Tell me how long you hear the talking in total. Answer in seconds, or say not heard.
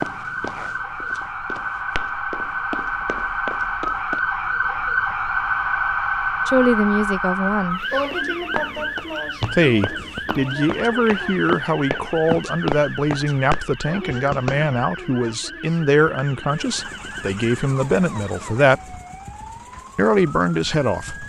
12 s.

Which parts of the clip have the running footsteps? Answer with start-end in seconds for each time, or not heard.
0.0-4.2, 8.1-14.7.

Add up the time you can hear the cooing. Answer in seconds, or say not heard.
not heard.